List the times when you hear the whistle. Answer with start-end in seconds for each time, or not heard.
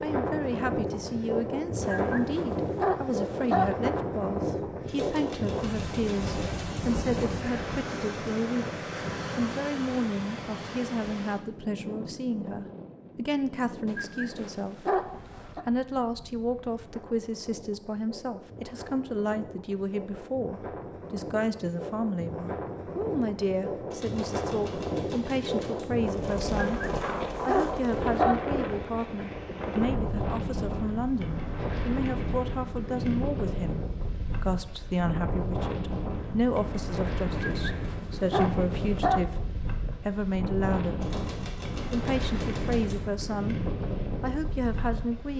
not heard.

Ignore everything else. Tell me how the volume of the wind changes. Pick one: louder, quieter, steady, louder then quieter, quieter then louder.
quieter then louder.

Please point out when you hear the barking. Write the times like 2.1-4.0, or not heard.
1.8-3.8, 13.8-15.7, 26.6-28.4, 37.3-39.3.